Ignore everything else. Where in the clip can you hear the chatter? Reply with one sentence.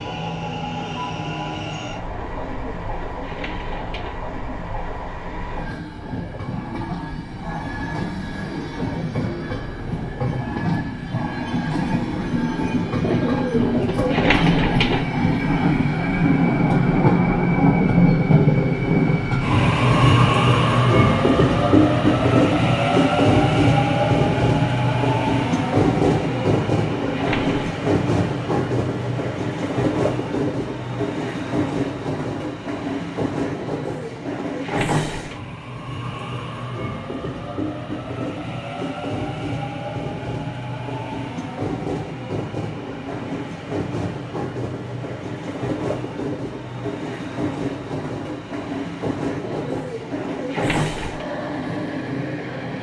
You can't hear the chatter here.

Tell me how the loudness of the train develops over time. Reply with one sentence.
The loudness of the train goes up, then down.